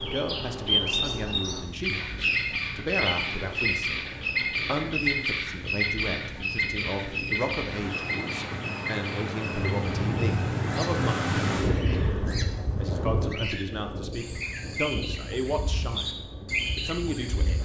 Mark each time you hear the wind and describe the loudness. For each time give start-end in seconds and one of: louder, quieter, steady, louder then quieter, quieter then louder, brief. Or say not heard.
0.1-17.6 louder then quieter.